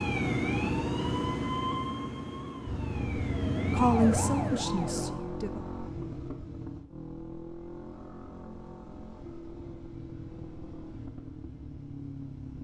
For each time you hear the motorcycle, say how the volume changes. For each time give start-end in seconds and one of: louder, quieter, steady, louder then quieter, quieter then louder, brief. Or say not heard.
2.6-12.5 quieter.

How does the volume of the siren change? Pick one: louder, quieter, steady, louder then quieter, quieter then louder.
quieter then louder.